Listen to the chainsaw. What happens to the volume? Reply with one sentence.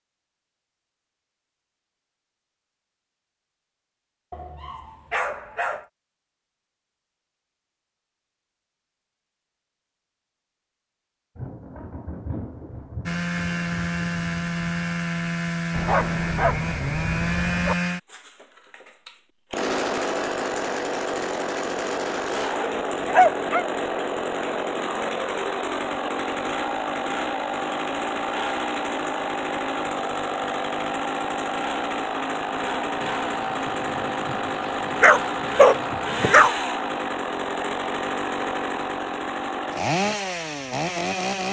The volume of the chainsaw stays about the same.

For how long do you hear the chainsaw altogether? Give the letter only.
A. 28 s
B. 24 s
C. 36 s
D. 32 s
A.